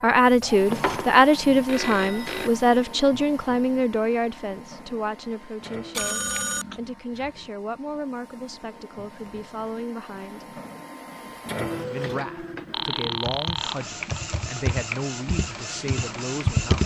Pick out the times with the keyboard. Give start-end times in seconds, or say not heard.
13.0-16.8.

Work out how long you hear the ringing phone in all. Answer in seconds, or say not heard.
5 s.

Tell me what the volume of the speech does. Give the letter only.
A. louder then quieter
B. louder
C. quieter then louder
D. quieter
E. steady
D.